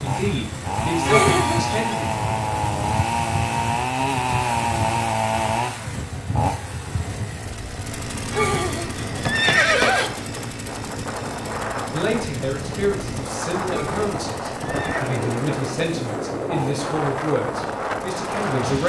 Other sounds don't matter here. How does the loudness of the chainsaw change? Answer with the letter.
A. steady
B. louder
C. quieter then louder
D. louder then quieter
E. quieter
E.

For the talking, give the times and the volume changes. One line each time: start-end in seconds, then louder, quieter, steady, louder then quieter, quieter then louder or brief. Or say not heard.
0.0-2.1 brief
11.9-18.8 steady.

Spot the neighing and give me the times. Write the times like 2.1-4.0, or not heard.
1.1-1.9, 8.3-10.1, 13.7-15.1.